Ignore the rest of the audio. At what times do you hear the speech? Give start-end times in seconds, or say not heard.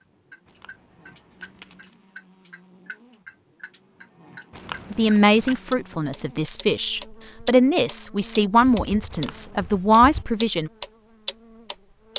4.9-10.7.